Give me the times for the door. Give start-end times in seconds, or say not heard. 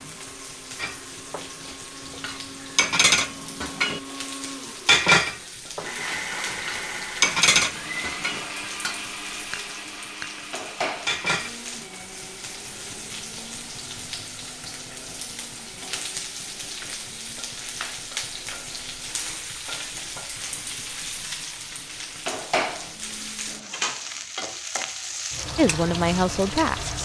not heard.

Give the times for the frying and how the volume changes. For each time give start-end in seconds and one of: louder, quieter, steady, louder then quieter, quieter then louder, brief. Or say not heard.
0.0-27.0 louder.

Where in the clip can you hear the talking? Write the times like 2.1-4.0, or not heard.
25.6-27.0.